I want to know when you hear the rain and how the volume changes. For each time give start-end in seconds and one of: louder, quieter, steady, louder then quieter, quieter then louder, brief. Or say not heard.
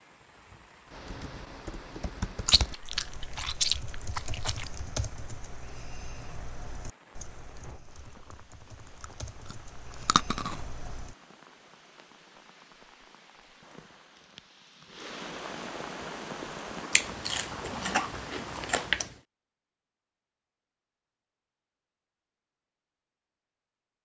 0.0-19.1 louder.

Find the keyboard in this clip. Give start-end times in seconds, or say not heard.
0.9-11.2.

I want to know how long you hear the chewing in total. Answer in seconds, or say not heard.
6 s.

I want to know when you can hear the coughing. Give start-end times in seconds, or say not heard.
17.5-18.1.